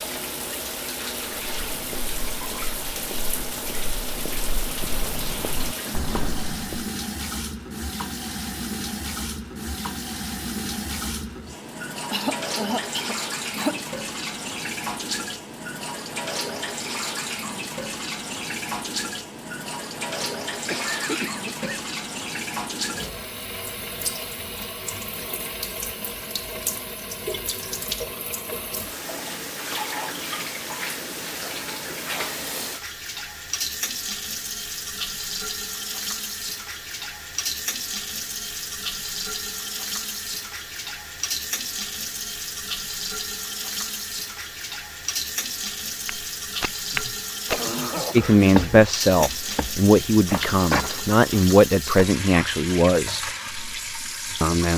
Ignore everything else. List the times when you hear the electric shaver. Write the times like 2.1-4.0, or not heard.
not heard.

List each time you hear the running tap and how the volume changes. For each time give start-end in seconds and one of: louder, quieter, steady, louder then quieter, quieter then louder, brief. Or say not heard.
0.0-54.7 steady.